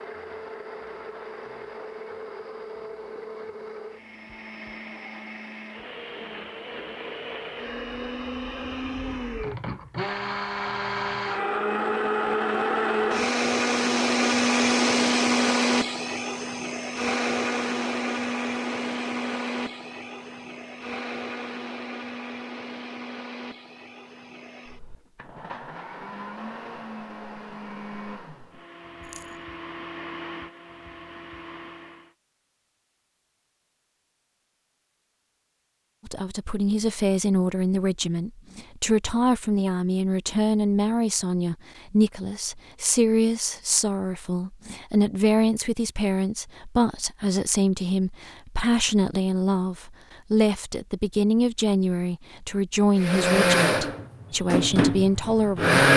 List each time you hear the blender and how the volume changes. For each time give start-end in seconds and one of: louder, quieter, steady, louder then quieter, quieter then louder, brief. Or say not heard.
0.0-32.1 louder then quieter
53.0-55.9 brief.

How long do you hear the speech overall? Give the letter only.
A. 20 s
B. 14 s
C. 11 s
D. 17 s
A.